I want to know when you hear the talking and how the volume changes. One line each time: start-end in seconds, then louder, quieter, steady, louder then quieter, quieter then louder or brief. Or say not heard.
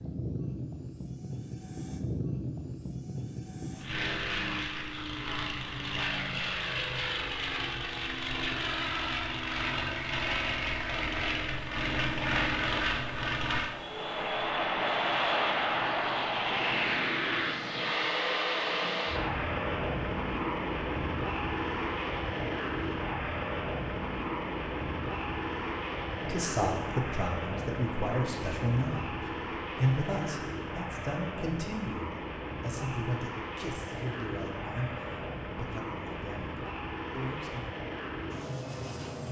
26.1-37.6 quieter.